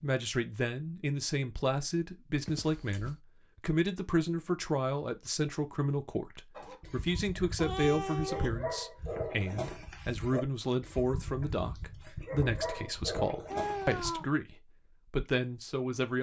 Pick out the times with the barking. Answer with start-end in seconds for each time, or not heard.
6.5-14.2.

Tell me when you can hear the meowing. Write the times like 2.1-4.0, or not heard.
2.4-3.2, 7.5-8.6, 13.5-14.2.